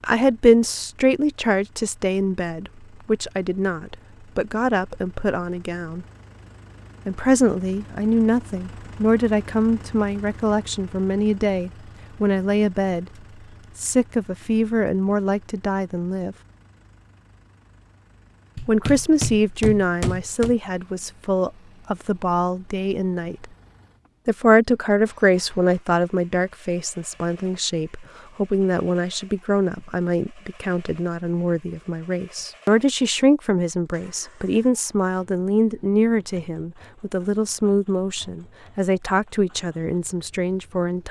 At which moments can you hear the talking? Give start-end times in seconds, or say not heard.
0.0-6.0, 7.0-13.1, 13.8-16.4, 18.6-23.4, 24.2-41.0.